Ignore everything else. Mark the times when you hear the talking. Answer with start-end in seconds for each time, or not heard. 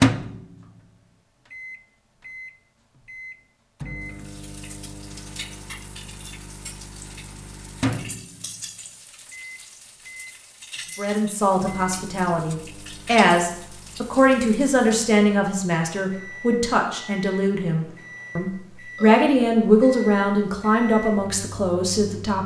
10.9-22.4.